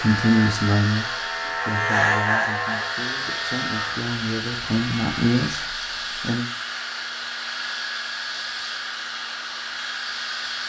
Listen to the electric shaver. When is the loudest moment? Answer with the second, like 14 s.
2 s.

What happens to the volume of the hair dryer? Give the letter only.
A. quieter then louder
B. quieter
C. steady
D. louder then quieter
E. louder
C.